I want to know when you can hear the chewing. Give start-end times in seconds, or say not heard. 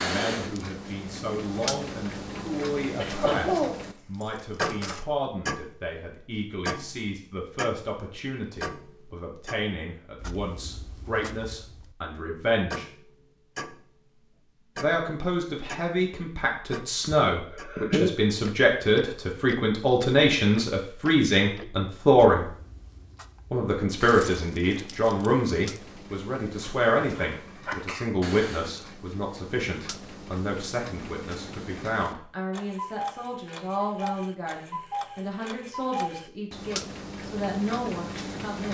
not heard.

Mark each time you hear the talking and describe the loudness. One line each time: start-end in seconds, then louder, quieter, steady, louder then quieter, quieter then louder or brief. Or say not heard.
0.0-12.8 steady
14.8-22.5 louder
23.5-38.6 quieter.